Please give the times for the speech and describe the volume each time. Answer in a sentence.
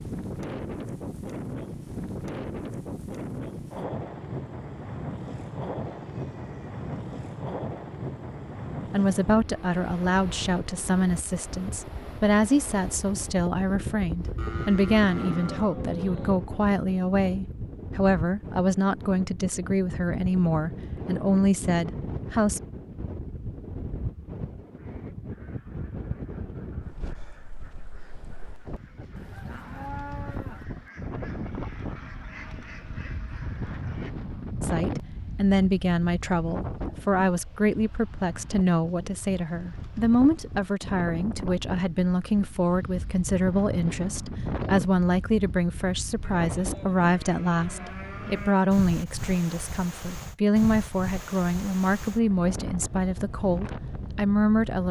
The speech can be heard from 8.9 to 22.6 s, at a steady volume; and from 34.6 to 54.8 s, at a steady volume.